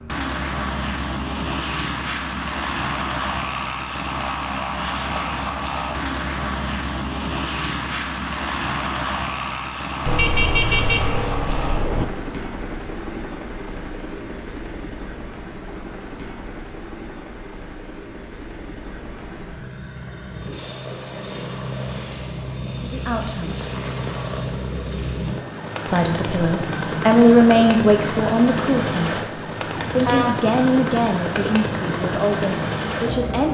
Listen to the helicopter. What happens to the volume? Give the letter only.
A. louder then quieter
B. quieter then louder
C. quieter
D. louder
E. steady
B.